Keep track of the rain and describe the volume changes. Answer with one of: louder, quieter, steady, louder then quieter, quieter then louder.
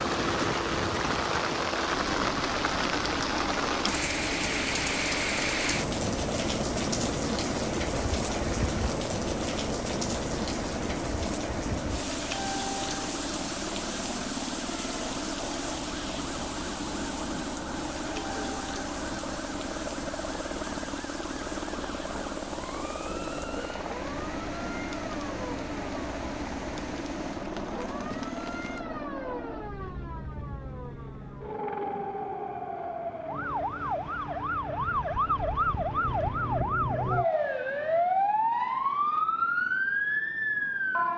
quieter.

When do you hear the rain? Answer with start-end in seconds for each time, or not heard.
0.0-28.9.